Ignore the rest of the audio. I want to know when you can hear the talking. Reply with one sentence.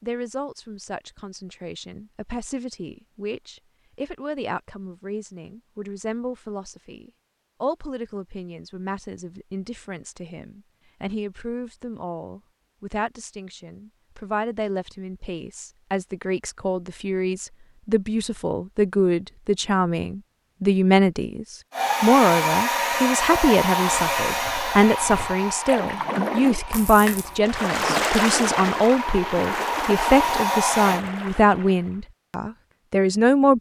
The talking can be heard from 0.0 to 33.5 s.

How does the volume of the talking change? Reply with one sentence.
The loudness of the talking goes up.